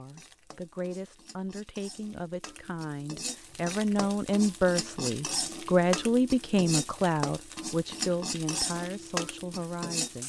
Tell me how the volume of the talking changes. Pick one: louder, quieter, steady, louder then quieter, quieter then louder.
louder then quieter.